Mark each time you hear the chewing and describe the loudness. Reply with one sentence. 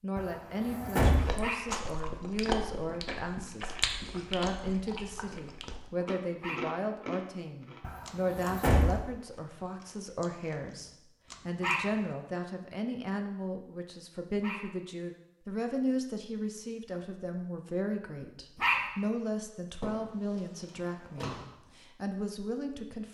You can hear the chewing from 1.1 to 12.2 s, getting quieter.